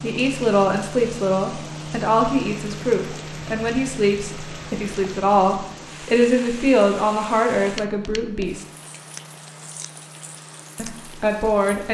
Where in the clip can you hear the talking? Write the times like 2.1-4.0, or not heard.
0.0-8.7, 10.8-11.8.